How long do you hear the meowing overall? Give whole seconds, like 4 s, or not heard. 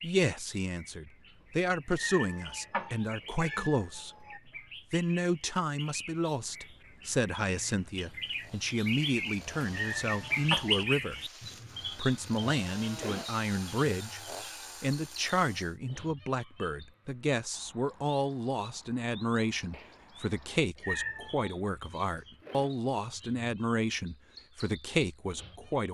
4 s.